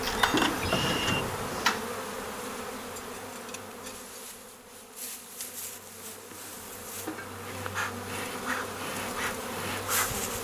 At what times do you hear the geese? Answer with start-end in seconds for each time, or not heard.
not heard.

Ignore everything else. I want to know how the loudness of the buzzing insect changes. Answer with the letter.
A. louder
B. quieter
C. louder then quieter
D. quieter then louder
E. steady
D.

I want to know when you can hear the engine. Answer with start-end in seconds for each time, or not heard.
0.0-1.9.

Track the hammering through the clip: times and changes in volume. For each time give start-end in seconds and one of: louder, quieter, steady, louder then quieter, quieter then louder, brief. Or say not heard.
not heard.